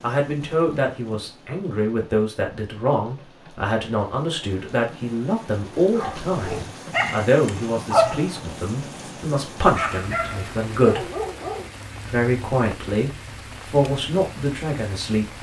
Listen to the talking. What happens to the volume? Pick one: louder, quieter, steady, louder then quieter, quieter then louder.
steady.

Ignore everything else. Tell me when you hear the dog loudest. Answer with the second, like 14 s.
8 s.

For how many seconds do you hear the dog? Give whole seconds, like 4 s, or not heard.
6 s.